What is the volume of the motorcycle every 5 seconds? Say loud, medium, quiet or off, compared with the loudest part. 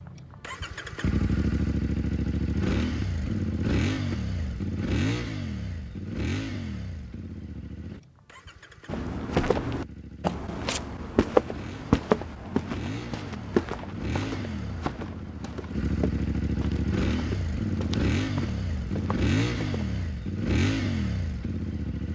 loud, medium, medium, loud, loud.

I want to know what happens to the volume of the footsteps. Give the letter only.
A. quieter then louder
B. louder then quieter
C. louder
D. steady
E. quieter
E.